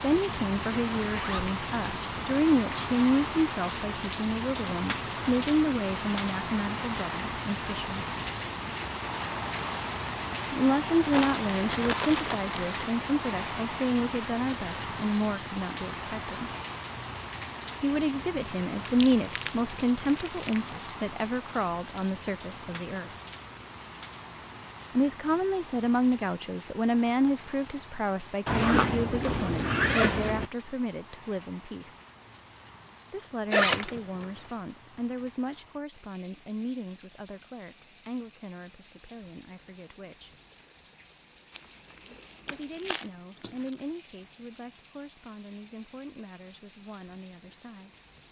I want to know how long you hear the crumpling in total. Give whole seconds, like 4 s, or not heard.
6 s.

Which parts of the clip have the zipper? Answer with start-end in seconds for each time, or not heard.
1.1-1.5, 28.4-30.4, 33.5-34.2.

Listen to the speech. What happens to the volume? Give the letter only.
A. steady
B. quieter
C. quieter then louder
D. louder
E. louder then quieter
B.